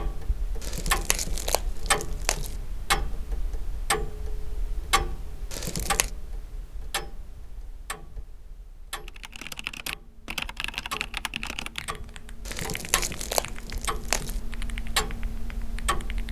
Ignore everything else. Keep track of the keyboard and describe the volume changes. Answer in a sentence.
The volume of the keyboard goes down.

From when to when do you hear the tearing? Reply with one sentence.
The tearing can be heard from 0.6 to 2.5 s, from 5.5 to 6.1 s and from 12.4 to 14.4 s.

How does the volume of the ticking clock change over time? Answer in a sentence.
The loudness of the ticking clock goes down, then up.